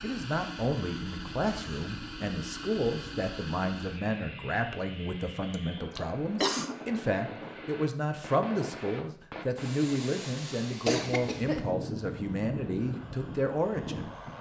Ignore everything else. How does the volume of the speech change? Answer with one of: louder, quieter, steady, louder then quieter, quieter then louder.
steady.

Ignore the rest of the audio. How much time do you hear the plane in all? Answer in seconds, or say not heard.
14 s.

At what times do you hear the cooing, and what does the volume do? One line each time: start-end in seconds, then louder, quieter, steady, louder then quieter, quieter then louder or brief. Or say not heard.
not heard.